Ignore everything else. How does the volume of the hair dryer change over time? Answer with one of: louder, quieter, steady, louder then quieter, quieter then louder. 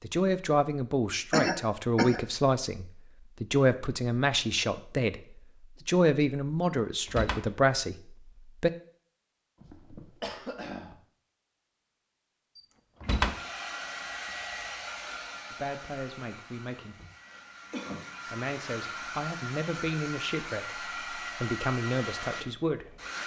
quieter then louder.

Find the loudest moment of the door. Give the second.
13 s.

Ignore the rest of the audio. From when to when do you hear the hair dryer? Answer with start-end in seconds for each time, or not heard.
13.1-23.2.